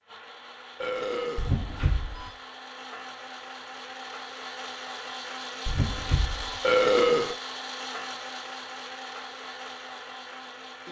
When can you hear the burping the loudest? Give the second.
7 s.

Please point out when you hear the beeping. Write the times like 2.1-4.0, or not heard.
1.4-2.3, 5.7-6.6.